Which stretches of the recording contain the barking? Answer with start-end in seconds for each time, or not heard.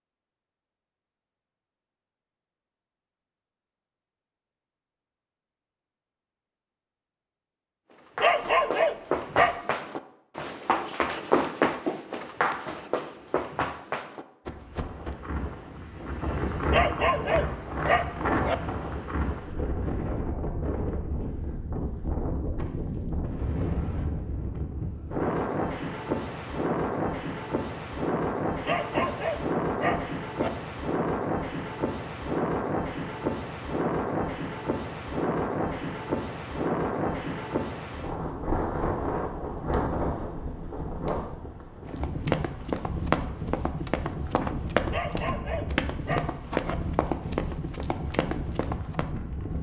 8.2-9.6, 16.7-18.6, 28.6-30.5, 44.9-46.8.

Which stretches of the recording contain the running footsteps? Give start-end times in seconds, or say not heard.
8.2-15.2, 41.9-49.1.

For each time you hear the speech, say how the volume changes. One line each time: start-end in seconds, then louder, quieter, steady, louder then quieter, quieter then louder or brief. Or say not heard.
not heard.